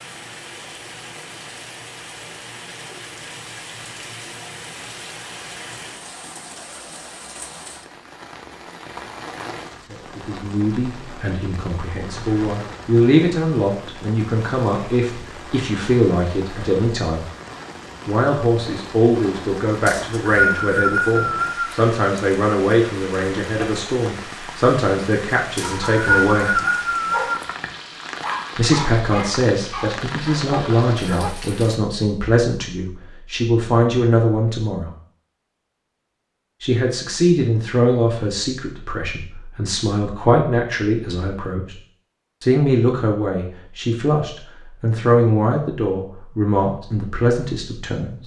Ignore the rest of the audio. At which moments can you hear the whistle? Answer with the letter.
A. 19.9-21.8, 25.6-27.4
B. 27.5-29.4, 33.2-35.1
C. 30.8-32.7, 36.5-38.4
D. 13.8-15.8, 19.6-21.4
A.